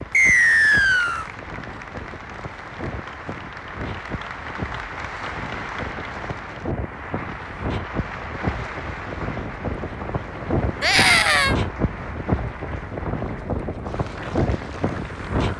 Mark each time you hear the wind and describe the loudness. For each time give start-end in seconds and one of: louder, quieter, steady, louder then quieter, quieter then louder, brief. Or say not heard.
0.0-15.5 louder.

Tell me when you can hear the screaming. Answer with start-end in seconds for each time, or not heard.
10.8-11.6.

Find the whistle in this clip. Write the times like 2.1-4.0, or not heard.
0.1-1.2.